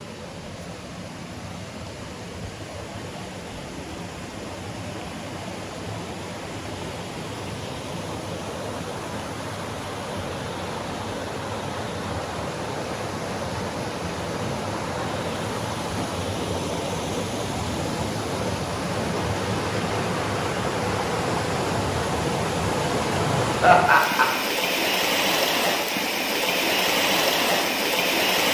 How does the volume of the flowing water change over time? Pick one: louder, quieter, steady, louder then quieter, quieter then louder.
louder.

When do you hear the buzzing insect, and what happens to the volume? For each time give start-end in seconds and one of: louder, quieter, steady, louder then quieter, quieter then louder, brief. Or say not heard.
not heard.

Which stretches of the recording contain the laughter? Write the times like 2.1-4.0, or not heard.
23.6-24.3.